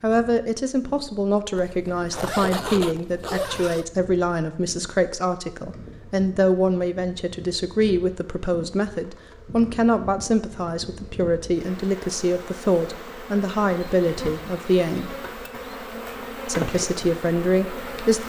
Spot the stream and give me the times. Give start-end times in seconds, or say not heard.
not heard.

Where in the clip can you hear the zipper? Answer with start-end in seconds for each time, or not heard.
1.6-3.9.